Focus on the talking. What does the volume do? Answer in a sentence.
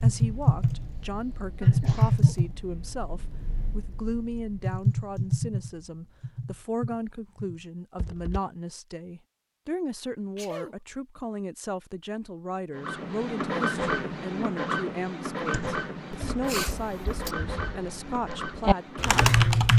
The loudness of the talking stays about the same.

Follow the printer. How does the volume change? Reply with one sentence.
The loudness of the printer goes down.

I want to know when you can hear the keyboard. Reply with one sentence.
You can hear the keyboard from 0.0 to 8.4 s and from 15.4 to 19.7 s.